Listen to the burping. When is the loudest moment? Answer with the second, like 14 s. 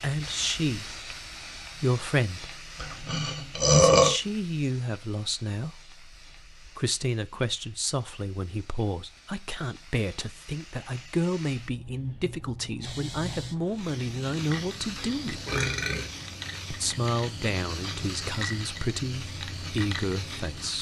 4 s.